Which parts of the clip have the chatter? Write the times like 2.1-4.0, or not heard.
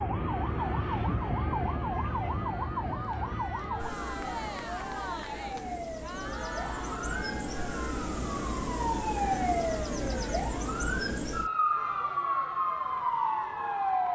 0.2-14.1.